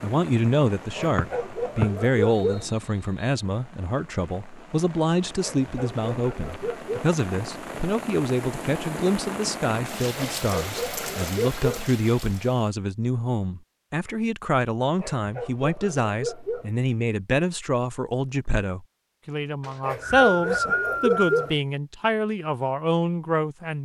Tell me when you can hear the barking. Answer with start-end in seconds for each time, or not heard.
0.9-2.6, 5.4-7.1, 10.2-11.8, 15.0-16.7, 19.8-21.6.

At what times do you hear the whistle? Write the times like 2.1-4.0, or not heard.
1.1-3.4, 19.6-21.5.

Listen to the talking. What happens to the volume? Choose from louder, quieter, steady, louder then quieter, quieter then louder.
steady.